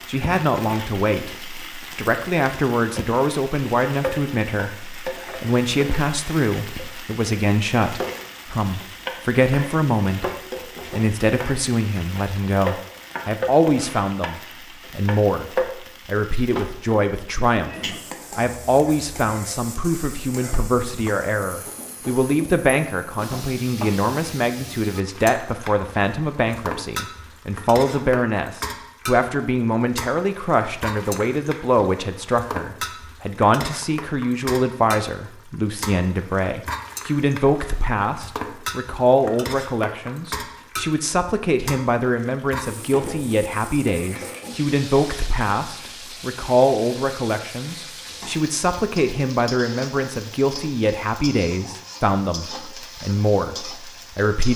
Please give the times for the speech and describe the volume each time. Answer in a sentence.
You can hear the speech from 0.1 to 10.2 s, at a steady volume; and from 10.9 to 54.5 s, at a steady volume.